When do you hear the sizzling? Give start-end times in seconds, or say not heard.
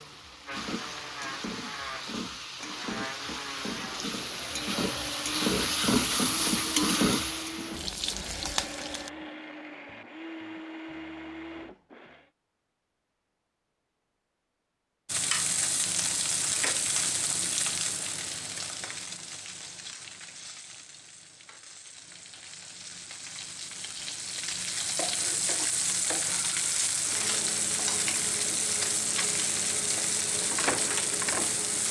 0.0-9.1, 15.1-31.8.